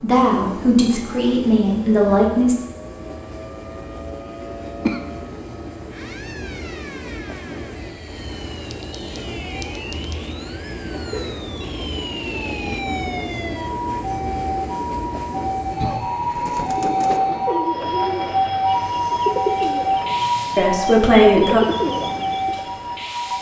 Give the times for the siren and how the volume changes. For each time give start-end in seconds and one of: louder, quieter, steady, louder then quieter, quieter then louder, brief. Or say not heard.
0.0-23.3 louder.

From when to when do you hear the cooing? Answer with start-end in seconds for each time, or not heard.
16.4-22.7.